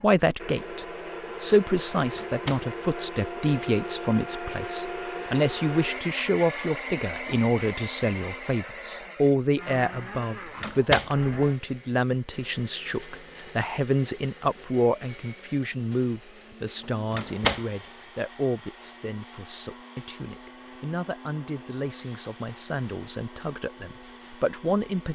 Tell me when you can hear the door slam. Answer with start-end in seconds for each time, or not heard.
2.1-2.6, 10.6-11.3, 17.1-17.6.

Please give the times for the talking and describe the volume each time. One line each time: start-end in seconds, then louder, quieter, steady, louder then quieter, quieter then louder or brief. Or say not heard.
0.0-25.1 quieter.